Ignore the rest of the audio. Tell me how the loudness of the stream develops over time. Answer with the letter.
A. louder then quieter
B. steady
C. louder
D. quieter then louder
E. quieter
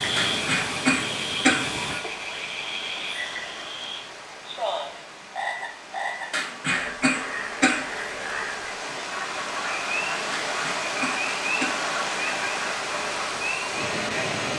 D.